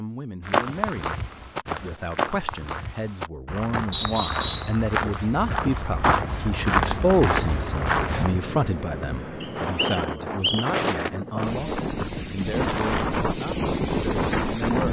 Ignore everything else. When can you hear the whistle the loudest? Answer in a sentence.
The volume of the whistle peaks at 4 seconds.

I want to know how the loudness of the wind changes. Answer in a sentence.
The volume of the wind goes up.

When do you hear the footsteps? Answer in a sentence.
You can hear the footsteps from 0.4 to 8.3 s.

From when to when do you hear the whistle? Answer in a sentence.
You can hear the whistle from 3.9 to 4.8 s and from 9.4 to 10.7 s.